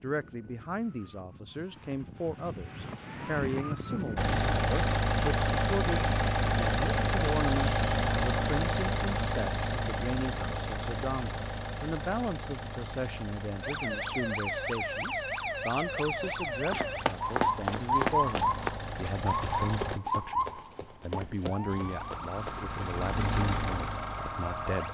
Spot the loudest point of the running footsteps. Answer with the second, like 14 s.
18 s.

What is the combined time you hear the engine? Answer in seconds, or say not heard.
19 s.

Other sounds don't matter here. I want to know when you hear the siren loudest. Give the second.
18 s.